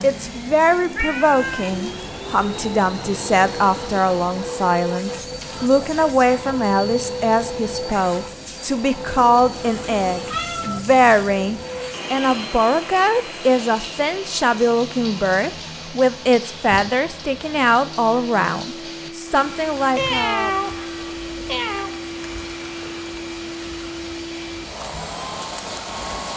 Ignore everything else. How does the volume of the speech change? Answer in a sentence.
The loudness of the speech stays about the same.